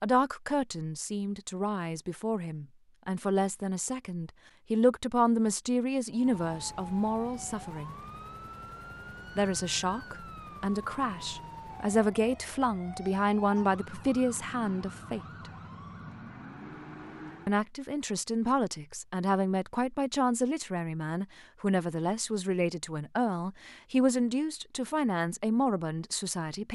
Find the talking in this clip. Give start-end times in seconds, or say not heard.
0.0-8.0, 9.3-15.5, 17.4-26.7.